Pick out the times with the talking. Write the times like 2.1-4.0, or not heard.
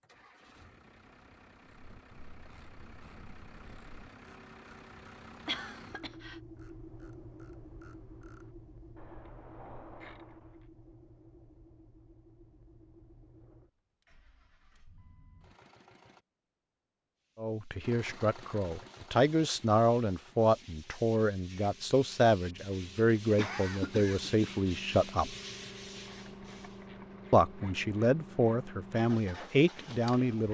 17.4-25.4, 27.3-30.4.